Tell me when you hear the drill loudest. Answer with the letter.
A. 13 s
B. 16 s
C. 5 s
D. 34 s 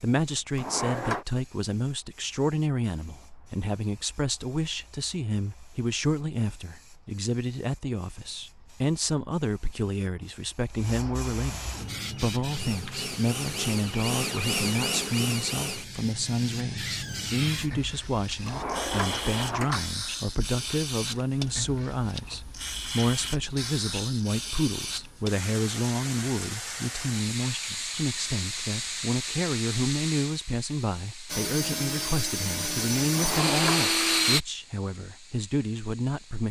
D.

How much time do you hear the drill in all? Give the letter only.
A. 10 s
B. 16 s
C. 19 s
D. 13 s
A.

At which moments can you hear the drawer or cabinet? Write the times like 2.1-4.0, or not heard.
0.6-1.2, 18.4-19.9, 33.1-34.0.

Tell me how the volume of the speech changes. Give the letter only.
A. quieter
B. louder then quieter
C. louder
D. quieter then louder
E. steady
E.